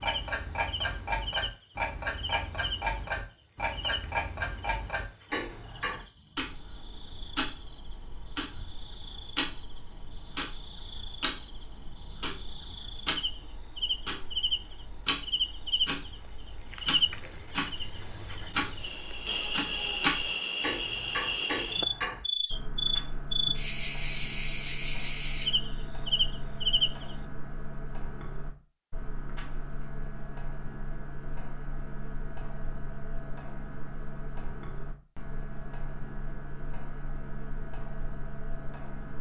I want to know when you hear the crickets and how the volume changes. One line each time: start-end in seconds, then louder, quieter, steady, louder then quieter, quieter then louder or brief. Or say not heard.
0.0-27.1 quieter then louder.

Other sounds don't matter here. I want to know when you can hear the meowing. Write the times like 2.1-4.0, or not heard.
not heard.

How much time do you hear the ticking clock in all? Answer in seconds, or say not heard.
39 s.